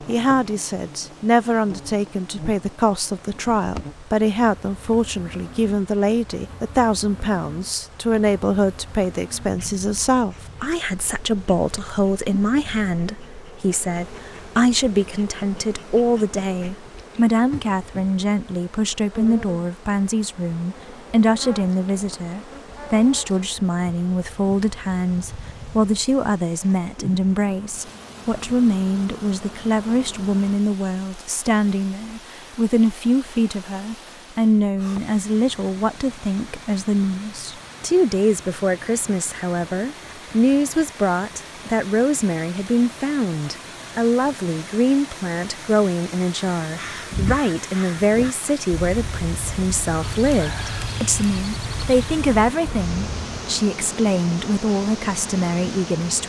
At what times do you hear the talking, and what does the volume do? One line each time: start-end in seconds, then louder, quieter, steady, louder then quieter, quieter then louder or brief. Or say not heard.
0.1-56.2 steady.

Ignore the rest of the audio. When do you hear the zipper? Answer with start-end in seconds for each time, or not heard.
not heard.